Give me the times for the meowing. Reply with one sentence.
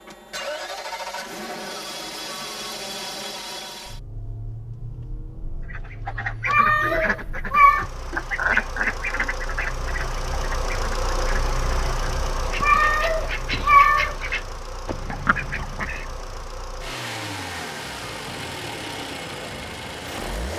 You can hear the meowing from 6.5 to 7.8 s and from 12.6 to 14.2 s.